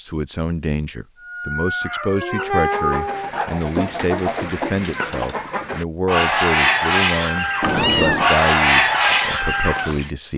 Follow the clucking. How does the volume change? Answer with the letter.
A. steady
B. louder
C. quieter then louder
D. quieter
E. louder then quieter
B.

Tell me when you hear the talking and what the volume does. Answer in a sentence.
You can hear the talking from 0.0 to 10.3 s, at a steady volume.